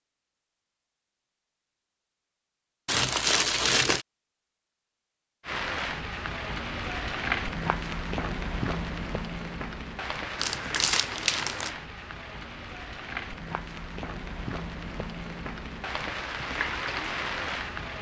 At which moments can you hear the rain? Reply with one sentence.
The rain can be heard from 5.4 to 17.9 s.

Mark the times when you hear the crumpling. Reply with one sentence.
The crumpling can be heard from 2.9 to 4.0 s and from 10.3 to 11.7 s.